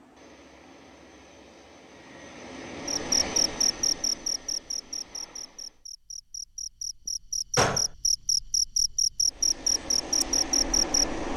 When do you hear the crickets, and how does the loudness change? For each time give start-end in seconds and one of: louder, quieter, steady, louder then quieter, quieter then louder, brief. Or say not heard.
2.9-11.1 quieter then louder.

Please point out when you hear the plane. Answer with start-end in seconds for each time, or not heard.
0.0-5.8, 9.2-11.3.